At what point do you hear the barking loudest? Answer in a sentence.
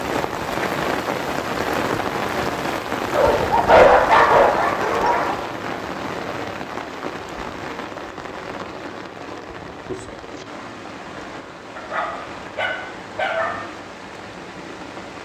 The loudest moment of the barking is at 4 seconds.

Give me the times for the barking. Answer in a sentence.
The barking can be heard from 3.1 to 5.3 s and from 11.8 to 13.6 s.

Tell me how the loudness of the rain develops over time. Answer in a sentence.
The volume of the rain goes down.